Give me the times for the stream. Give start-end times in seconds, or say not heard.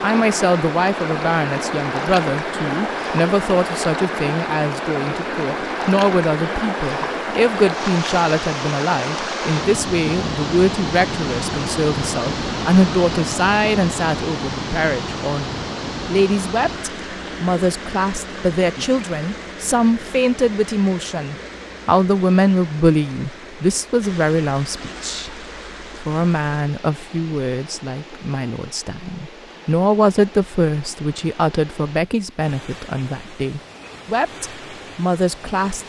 0.0-35.8.